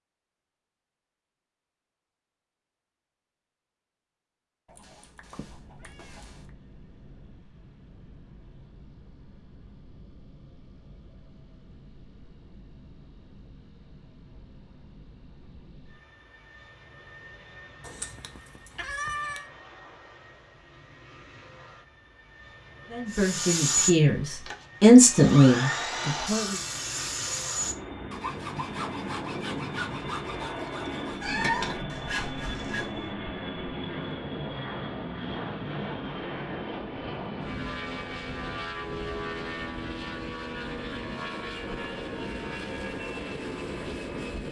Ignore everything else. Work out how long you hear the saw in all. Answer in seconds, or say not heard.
10 s.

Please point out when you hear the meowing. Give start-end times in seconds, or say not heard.
4.7-6.5, 17.8-19.4, 31.2-31.8.